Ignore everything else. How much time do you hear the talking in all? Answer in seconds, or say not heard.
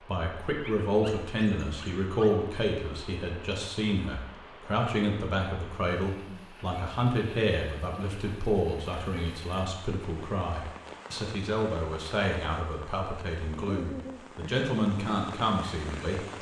16 s.